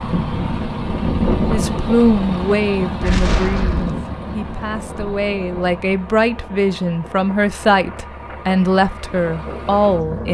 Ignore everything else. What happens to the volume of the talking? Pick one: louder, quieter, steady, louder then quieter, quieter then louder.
quieter then louder.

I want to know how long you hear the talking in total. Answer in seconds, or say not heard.
9 s.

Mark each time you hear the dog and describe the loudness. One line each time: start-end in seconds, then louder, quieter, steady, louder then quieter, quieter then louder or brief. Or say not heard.
not heard.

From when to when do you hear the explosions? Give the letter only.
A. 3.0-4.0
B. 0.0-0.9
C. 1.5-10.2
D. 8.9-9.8
A.